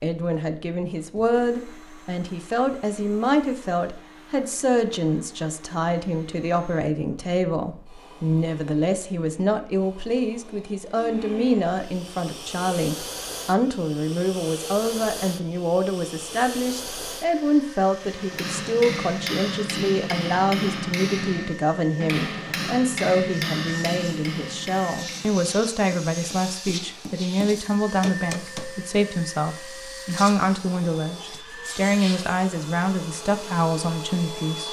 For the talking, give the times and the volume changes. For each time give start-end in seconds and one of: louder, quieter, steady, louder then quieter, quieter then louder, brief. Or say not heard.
0.0-34.6 steady.